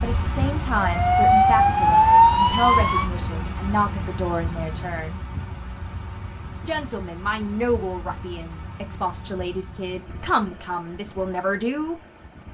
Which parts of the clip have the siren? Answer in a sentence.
You can hear the siren from 0.0 to 3.1 s.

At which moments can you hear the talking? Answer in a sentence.
The talking can be heard from 0.0 to 5.2 s and from 6.7 to 12.0 s.